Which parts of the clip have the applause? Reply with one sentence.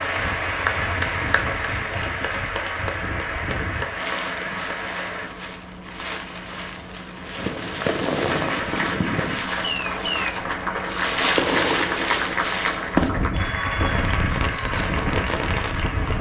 You can hear the applause from 0.0 to 5.3 s and from 8.2 to 16.1 s.